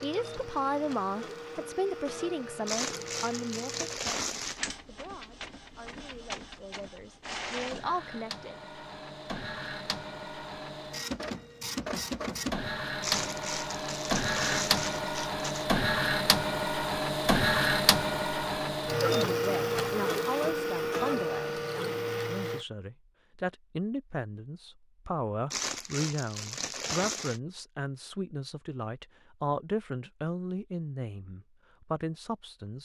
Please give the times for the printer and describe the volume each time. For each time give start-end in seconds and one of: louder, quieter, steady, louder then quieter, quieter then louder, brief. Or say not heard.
0.0-22.6 louder.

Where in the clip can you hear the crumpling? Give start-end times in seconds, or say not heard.
2.6-4.7, 13.0-15.7, 25.5-27.4.